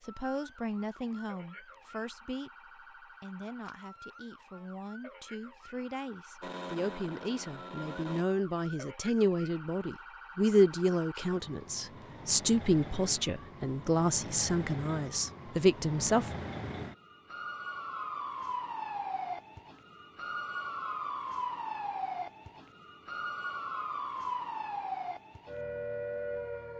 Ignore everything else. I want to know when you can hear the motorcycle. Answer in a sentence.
You can hear the motorcycle from 6.4 to 8.2 s.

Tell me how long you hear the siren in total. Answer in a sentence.
You can hear the siren for 27 seconds altogether.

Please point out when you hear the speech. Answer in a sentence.
The speech can be heard from 0.1 to 16.4 s.